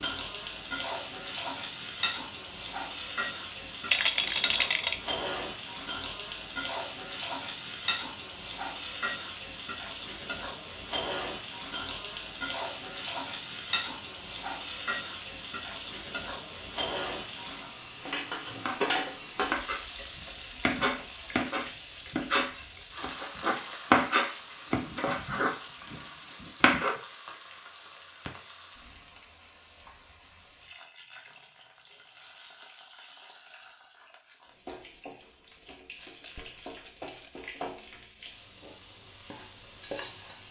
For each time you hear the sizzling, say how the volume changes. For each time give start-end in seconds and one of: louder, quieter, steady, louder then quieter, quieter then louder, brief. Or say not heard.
0.0-40.4 quieter.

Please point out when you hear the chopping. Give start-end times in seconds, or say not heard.
18.6-26.9.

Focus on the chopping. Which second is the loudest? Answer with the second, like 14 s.
24 s.